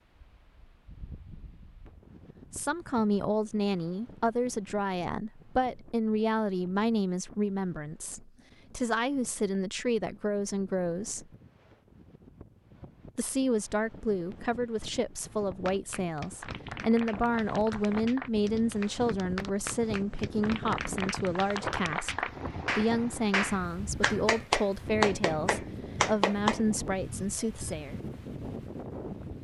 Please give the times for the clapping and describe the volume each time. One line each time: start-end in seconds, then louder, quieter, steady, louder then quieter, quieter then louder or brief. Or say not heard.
15.7-26.6 louder.